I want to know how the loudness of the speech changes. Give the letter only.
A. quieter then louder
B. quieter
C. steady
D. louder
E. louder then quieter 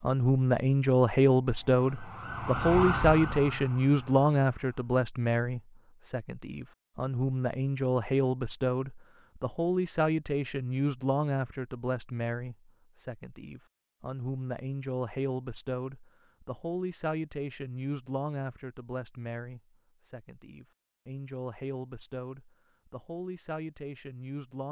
B.